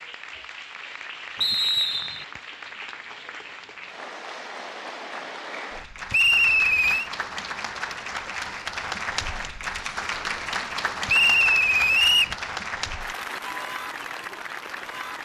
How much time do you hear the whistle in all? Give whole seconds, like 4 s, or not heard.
3 s.